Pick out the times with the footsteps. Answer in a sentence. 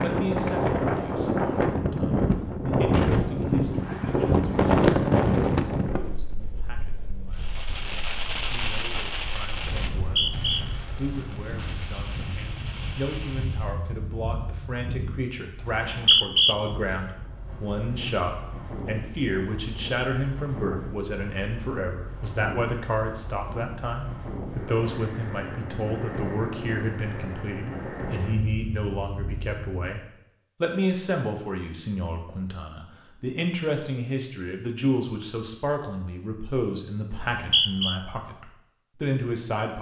The footsteps can't be heard in this clip.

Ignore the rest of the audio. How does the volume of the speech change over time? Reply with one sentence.
The loudness of the speech goes up.